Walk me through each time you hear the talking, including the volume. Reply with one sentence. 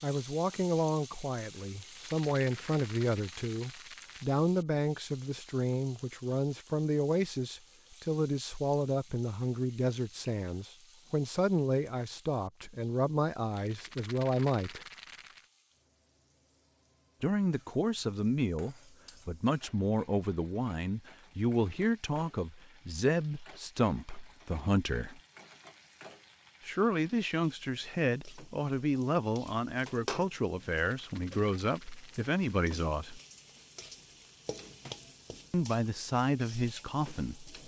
You can hear the talking from 0.0 to 14.8 s, at a steady volume; from 17.2 to 25.2 s, at a steady volume; from 26.6 to 33.2 s, at a steady volume; and briefly from 35.5 to 37.5 s.